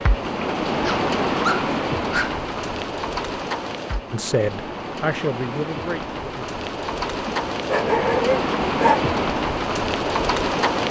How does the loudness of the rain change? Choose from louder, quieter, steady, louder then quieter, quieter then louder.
quieter then louder.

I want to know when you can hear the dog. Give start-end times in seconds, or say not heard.
0.8-2.4, 7.2-9.0.